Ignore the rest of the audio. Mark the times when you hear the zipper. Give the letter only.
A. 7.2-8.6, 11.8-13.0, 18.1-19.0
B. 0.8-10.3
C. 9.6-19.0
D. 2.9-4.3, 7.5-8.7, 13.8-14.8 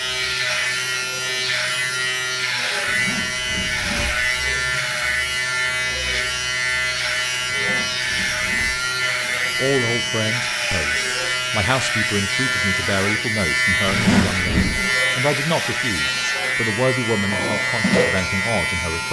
D.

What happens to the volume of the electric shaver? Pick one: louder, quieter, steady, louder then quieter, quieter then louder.
steady.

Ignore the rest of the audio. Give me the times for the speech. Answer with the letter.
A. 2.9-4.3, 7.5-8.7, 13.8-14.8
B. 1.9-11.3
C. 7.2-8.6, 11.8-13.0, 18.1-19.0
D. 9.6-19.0
D.